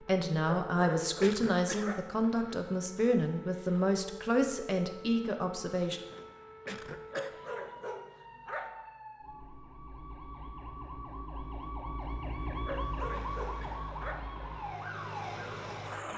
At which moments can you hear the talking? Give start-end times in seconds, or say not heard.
0.1-6.0.